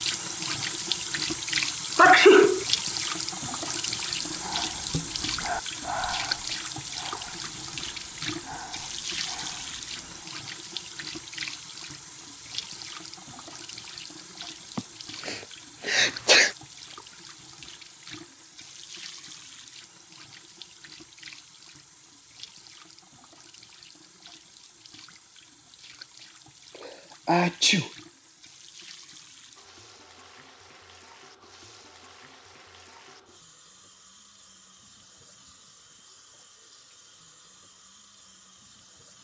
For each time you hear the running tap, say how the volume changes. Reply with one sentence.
The running tap can be heard from 0.0 to 39.1 s, getting quieter.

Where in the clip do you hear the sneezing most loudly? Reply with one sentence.
The loudest moment of the sneezing is at 2 seconds.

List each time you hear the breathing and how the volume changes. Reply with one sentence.
You can hear the breathing from 4.2 to 10.3 s, getting quieter.